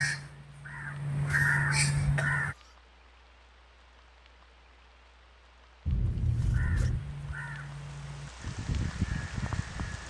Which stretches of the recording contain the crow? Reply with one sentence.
You can hear the crow from 0.0 to 2.5 s and from 6.4 to 10.0 s.